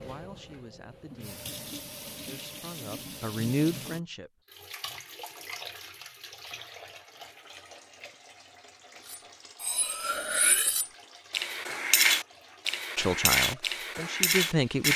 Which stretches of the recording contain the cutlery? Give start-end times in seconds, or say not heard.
9.1-14.9.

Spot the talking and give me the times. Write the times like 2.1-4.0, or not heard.
0.0-4.4, 12.9-14.9.